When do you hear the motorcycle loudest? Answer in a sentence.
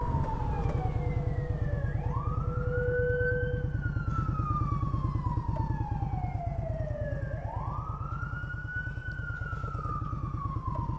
The loudest moment of the motorcycle is at 3 seconds.